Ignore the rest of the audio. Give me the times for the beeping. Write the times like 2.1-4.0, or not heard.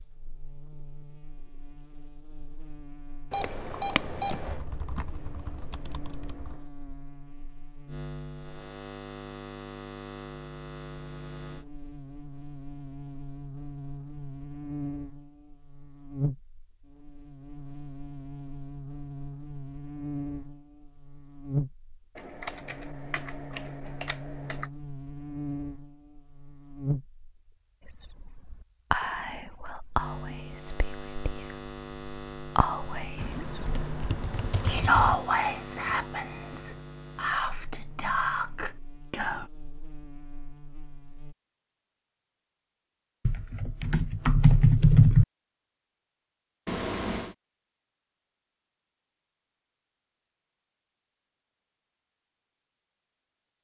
3.3-4.5, 46.6-47.4.